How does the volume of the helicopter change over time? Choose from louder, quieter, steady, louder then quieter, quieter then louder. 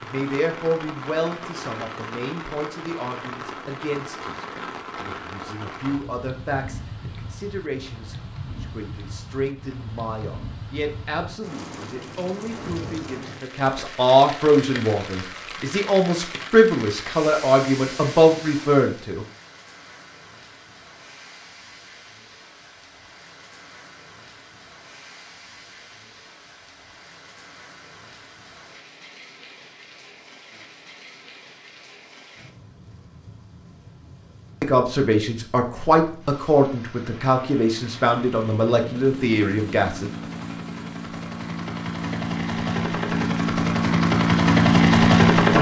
louder.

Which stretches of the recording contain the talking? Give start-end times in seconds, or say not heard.
0.0-19.2, 34.6-40.1.